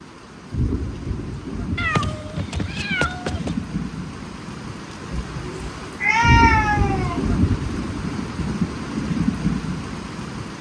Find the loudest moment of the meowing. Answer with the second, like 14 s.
6 s.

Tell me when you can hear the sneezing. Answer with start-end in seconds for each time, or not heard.
not heard.